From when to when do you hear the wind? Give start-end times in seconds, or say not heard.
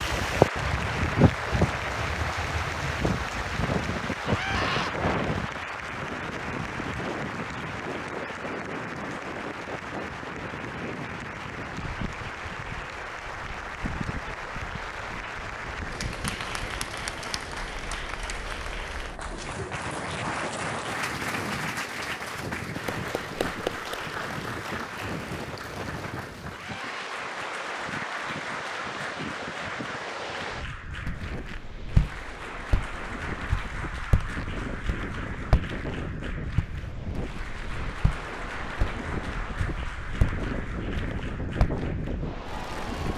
0.0-43.1.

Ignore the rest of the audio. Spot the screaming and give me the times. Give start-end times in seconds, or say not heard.
4.2-5.0, 26.5-27.2.